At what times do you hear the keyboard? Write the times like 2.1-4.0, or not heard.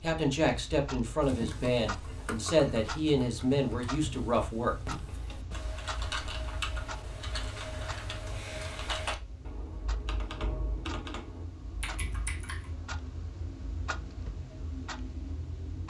1.2-12.7.